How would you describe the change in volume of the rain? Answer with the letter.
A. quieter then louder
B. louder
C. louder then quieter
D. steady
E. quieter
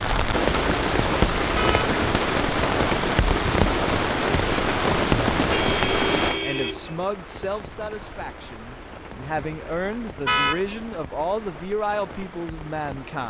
E.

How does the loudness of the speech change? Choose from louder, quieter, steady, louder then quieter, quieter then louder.
quieter then louder.